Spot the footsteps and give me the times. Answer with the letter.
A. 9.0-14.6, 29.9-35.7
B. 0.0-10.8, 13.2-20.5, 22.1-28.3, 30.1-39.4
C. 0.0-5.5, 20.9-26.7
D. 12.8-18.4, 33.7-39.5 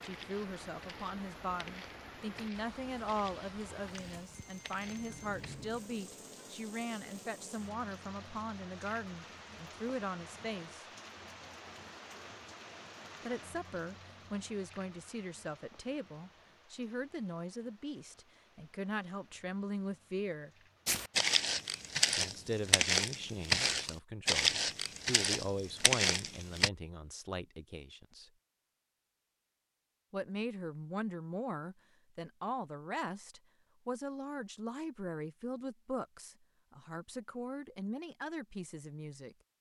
C.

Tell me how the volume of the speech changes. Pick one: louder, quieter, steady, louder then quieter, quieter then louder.
steady.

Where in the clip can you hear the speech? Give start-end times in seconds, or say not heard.
0.0-10.8, 13.2-20.5, 22.1-28.3, 30.1-39.4.